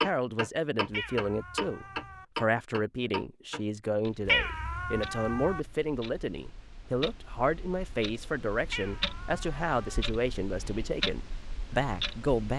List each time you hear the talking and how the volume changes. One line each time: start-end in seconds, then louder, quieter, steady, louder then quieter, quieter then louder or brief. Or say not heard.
0.0-12.5 steady.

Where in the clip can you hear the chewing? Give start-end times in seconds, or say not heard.
not heard.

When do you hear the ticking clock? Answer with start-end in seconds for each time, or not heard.
0.0-12.5.